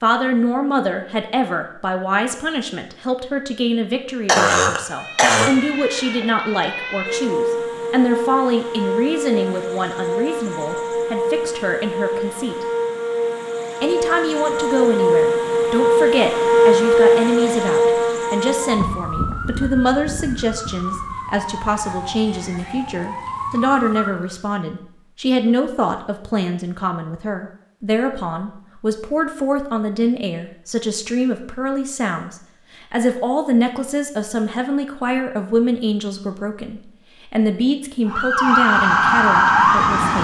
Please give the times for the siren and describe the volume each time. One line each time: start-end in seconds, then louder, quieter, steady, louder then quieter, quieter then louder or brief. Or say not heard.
4.8-24.4 louder then quieter
38.1-40.1 brief.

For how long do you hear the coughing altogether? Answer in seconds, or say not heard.
2 s.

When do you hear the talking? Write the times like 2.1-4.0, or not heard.
0.0-12.7, 13.8-40.1.